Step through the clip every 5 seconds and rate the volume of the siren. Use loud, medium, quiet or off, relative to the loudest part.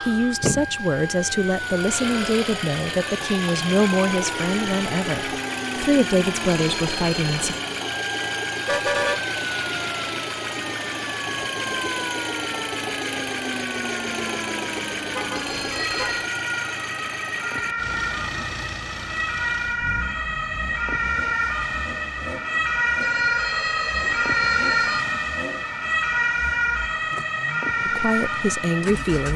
medium, medium, medium, medium, loud, loud.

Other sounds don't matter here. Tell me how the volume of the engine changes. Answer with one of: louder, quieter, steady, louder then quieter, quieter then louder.
quieter.